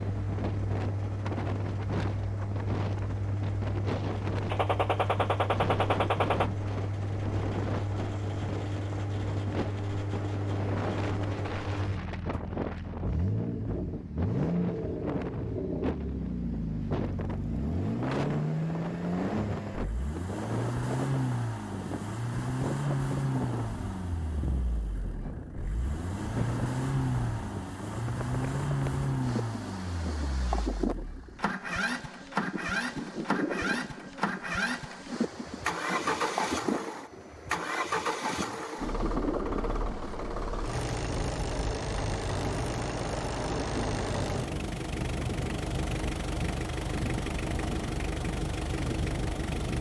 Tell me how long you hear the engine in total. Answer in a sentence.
The engine can be heard for 50 seconds in total.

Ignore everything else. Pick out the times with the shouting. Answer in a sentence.
You can't hear the shouting here.